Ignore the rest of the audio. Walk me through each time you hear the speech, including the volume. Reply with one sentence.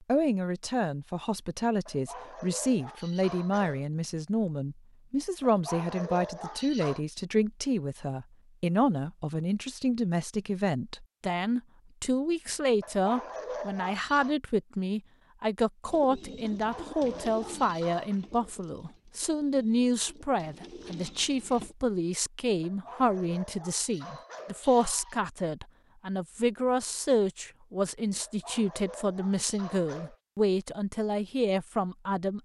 You can hear the speech from 0.1 to 32.4 s, at a steady volume.